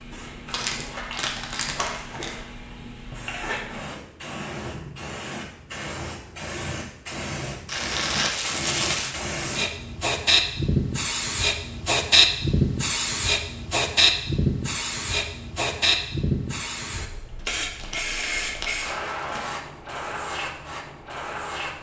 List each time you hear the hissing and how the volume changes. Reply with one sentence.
You can hear the hissing from 0.0 to 21.7 s, getting louder then quieter.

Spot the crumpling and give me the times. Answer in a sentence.
You can hear the crumpling from 0.5 to 2.4 s, from 7.7 to 9.2 s and from 17.4 to 19.4 s.